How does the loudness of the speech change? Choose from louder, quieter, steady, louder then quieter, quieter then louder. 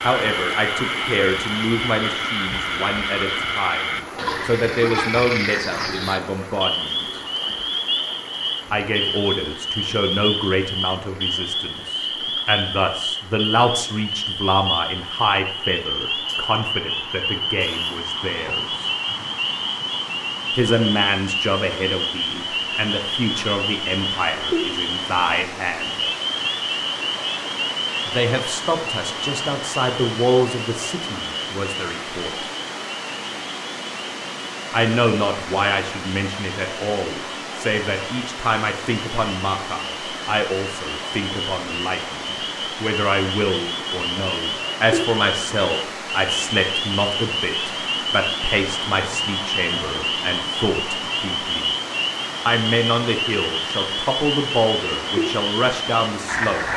steady.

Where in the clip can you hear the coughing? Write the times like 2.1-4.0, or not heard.
not heard.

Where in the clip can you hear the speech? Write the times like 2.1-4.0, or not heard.
0.0-7.2, 8.7-18.9, 20.6-26.0, 28.1-32.5, 34.7-51.7, 52.5-56.7.